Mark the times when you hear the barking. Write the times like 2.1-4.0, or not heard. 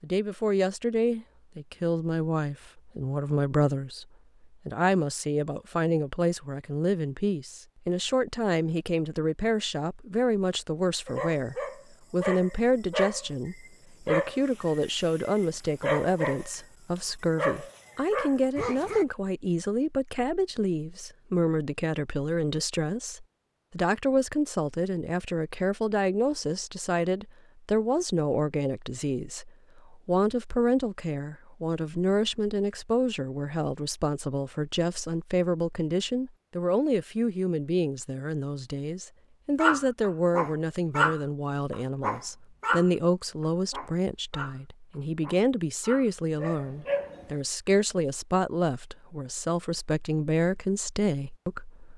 11.1-19.1, 39.5-47.3.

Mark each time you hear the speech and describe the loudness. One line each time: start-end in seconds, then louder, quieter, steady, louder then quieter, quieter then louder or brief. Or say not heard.
0.0-4.0 quieter then louder
4.7-51.9 steady.